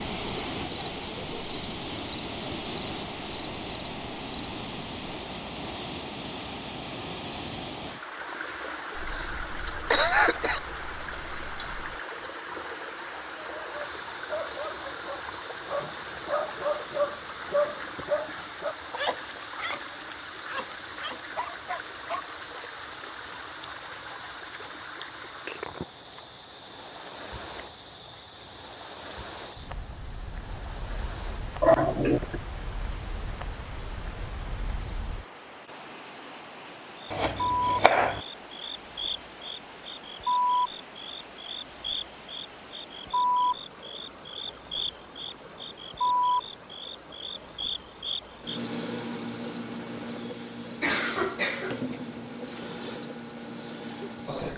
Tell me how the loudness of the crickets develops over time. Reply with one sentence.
The volume of the crickets goes down, then up.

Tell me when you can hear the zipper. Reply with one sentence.
The zipper can't be heard in this clip.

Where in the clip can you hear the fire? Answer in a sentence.
The fire can't be heard in this clip.